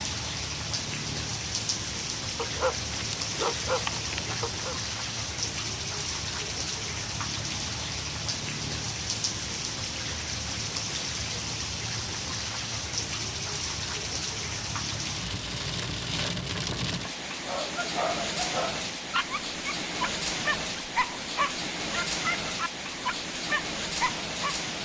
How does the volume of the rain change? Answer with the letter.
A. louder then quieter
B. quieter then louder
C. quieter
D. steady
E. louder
D.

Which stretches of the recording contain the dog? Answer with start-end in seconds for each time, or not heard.
2.4-4.8, 17.4-24.6.